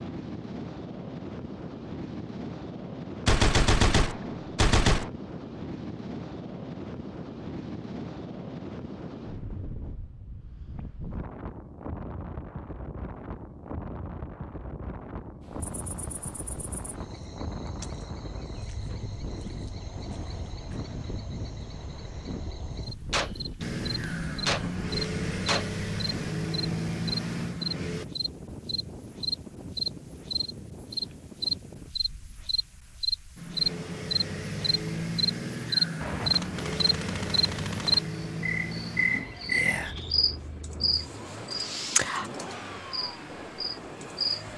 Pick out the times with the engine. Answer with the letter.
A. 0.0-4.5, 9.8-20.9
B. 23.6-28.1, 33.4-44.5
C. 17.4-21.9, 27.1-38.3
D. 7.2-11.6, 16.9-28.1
B.